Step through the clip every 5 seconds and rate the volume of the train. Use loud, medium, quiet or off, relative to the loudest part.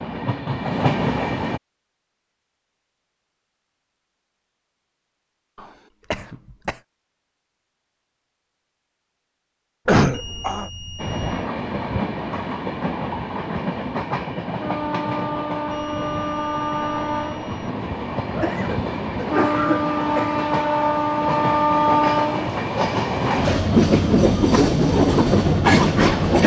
medium, off, medium, medium, loud, loud.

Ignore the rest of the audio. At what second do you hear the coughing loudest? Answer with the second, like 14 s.
10 s.